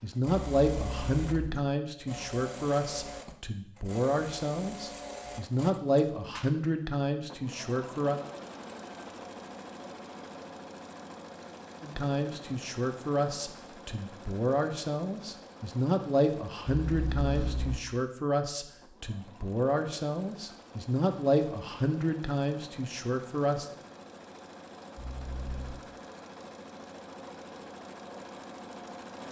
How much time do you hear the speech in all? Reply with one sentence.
The speech can be heard for 20 seconds in total.